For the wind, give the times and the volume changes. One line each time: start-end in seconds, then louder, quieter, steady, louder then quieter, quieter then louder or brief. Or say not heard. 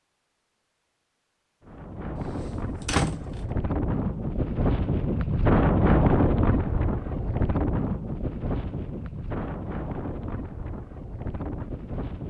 1.6-12.2 louder then quieter.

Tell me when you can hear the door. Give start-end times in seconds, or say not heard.
2.1-3.3.